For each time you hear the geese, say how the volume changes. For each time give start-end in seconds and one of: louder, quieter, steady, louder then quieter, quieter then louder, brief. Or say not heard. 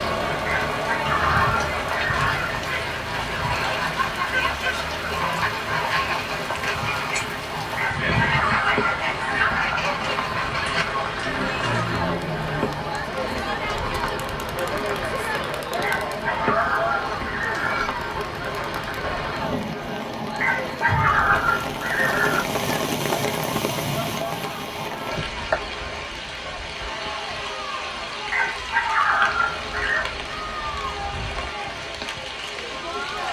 1.1-12.8 steady.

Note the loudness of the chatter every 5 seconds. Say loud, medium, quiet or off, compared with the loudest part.
loud, loud, loud, loud, medium, medium, medium.